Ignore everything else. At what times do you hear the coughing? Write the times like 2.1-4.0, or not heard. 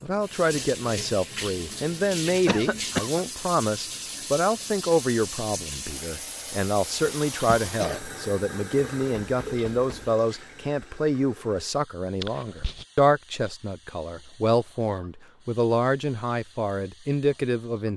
2.5-3.2, 7.1-8.1, 12.2-12.8.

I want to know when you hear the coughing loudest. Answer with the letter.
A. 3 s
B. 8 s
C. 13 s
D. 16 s
A.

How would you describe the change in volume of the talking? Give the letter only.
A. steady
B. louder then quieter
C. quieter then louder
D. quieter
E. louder
A.